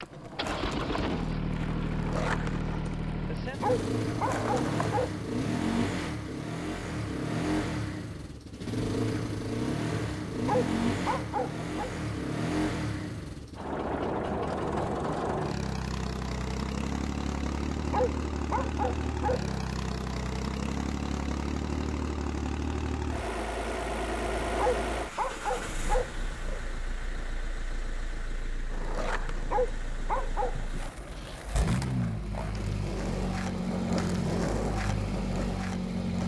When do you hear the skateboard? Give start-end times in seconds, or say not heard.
0.0-4.9, 28.7-36.2.